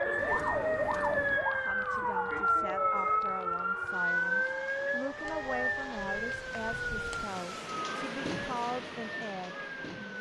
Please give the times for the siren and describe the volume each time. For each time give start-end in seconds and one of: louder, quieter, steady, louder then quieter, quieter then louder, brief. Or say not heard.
0.0-10.1 quieter.